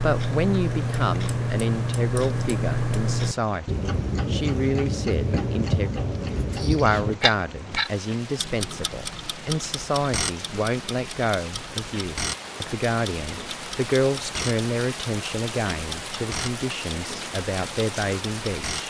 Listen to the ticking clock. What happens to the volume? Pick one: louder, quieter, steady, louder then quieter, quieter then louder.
quieter.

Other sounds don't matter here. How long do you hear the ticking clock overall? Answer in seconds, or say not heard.
19 s.